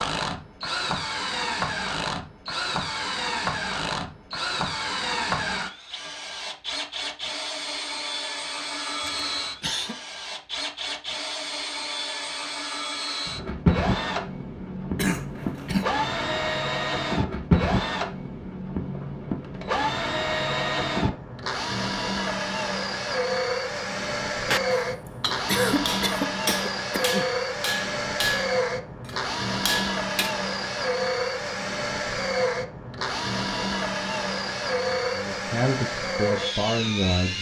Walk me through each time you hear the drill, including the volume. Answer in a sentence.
You can hear the drill from 0.0 to 37.3 s, at a steady volume.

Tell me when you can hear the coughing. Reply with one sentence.
The coughing can be heard from 9.1 to 9.9 s, from 14.9 to 15.9 s and from 25.4 to 27.2 s.